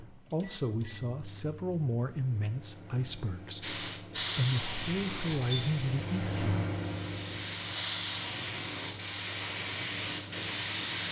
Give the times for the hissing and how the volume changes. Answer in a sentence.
You can hear the hissing from 3.6 to 11.0 s, getting quieter then louder.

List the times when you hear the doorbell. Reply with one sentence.
You can hear the doorbell from 5.3 to 5.7 s.